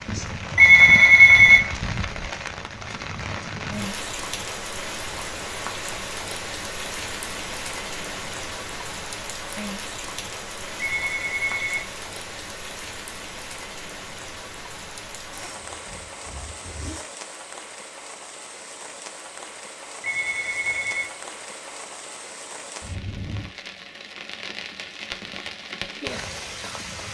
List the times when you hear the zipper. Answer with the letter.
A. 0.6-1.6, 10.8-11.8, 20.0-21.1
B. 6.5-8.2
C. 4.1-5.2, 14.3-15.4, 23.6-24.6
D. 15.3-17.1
D.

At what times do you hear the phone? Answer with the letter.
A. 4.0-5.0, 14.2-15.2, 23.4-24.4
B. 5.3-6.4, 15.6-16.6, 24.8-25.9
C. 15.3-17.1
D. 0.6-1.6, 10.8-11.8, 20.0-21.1
D.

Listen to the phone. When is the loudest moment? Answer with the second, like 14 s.
1 s.